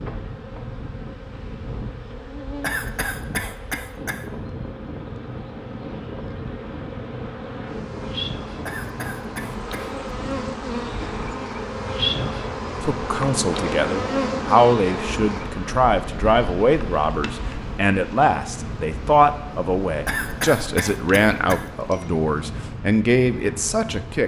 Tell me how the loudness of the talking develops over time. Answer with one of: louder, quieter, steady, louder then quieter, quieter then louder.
steady.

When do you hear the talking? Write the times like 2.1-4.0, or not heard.
12.8-24.2.